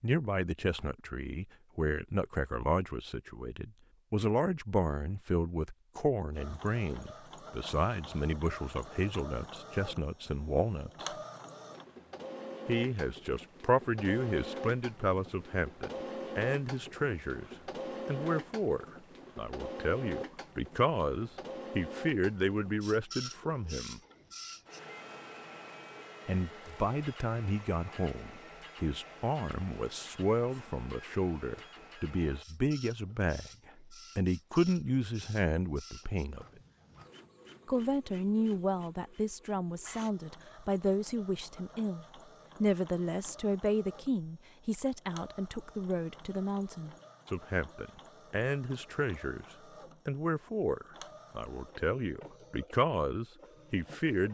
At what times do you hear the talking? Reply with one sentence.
You can hear the talking from 0.0 to 11.2 s, from 12.7 to 24.0 s, from 26.2 to 36.5 s, from 37.6 to 49.5 s and from 50.0 to 54.3 s.